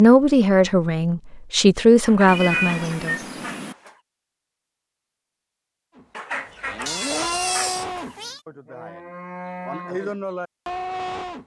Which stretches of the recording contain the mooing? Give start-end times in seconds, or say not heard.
6.0-11.4.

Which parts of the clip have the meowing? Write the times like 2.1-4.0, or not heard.
2.2-3.8, 6.8-8.4.